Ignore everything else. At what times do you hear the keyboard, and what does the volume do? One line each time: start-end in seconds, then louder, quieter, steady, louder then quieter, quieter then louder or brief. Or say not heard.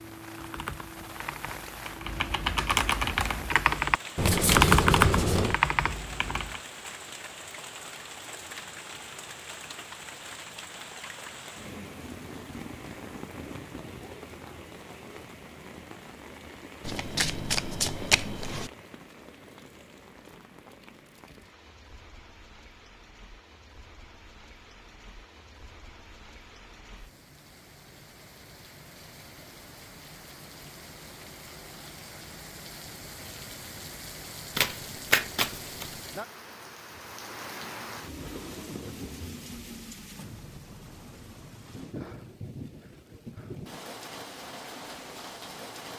0.3-6.6 louder then quieter.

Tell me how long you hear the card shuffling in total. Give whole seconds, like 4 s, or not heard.
5 s.